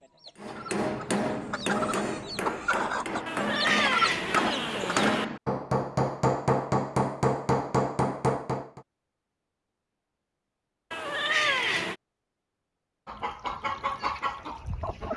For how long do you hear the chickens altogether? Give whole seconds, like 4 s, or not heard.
7 s.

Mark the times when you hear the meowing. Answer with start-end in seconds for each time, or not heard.
3.2-5.2, 10.9-11.9.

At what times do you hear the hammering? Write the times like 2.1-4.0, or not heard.
0.3-8.8.